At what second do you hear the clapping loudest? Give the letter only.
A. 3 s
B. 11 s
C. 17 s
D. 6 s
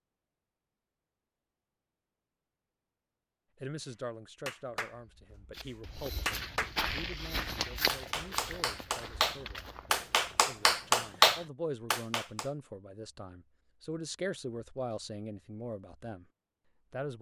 B.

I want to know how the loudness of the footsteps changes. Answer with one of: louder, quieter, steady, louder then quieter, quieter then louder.
quieter.